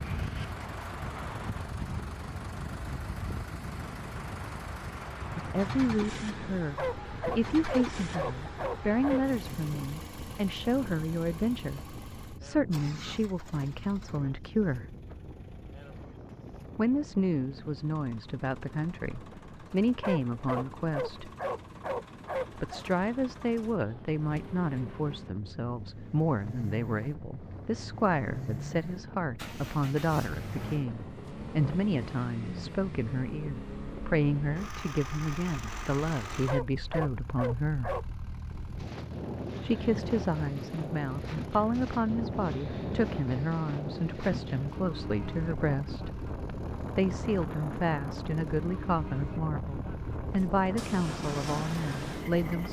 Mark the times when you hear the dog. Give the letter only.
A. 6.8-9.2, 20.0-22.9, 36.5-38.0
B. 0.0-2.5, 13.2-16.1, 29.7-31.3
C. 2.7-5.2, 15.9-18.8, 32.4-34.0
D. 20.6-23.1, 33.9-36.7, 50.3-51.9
A.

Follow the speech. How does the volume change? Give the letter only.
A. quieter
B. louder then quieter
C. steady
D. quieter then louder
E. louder
C.